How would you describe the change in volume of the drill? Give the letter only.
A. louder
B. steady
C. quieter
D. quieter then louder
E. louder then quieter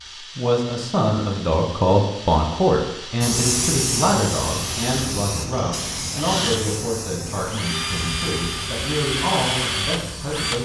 A.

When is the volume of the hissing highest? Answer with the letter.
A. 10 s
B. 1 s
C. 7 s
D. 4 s
D.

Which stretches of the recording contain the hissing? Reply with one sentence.
You can hear the hissing from 3.2 to 10.6 s.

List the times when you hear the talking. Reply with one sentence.
The talking can be heard from 0.1 to 10.6 s.